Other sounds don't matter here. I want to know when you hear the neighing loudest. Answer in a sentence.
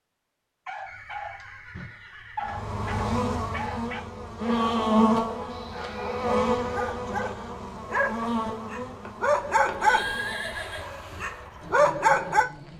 The volume of the neighing peaks at 10 seconds.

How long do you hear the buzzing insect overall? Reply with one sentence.
The buzzing insect can be heard for 10 seconds in total.